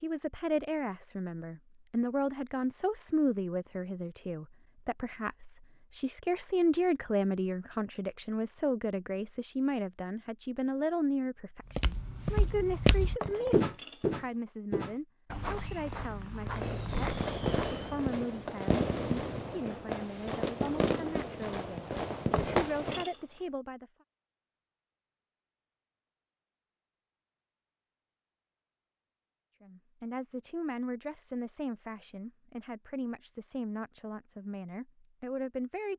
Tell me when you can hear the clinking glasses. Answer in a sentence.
You can hear the clinking glasses from 13.2 to 14.1 s and from 22.3 to 23.1 s.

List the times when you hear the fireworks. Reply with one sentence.
You can hear the fireworks from 16.4 to 23.1 s.